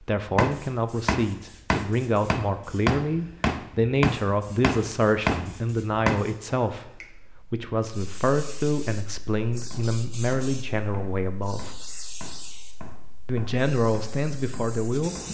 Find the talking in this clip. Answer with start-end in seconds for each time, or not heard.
0.0-11.8, 13.2-15.2.